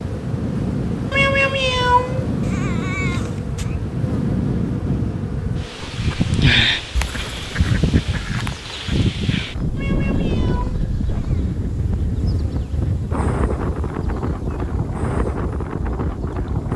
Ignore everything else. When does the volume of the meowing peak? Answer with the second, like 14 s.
2 s.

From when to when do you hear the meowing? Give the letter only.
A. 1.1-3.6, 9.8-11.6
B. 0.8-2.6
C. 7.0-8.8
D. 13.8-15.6
A.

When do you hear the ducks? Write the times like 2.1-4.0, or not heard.
7.0-8.8.